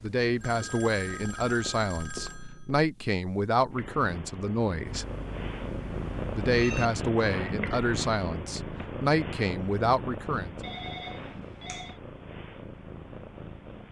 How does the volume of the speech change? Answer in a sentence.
The volume of the speech stays about the same.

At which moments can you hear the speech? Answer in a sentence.
You can hear the speech from 0.0 to 5.0 s and from 6.3 to 10.6 s.